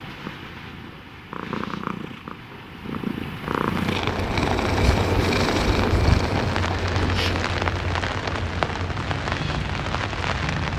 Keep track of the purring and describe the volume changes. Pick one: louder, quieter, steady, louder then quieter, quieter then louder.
louder then quieter.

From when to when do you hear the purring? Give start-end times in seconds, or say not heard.
0.0-10.7.